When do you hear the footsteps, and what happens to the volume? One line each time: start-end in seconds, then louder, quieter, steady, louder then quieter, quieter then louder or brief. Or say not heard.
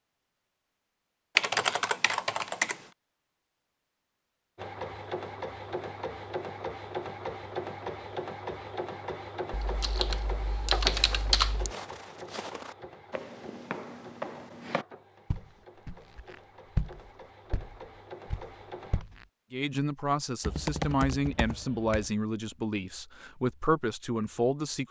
10.8-19.2 louder then quieter.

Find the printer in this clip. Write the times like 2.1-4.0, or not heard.
4.5-19.1.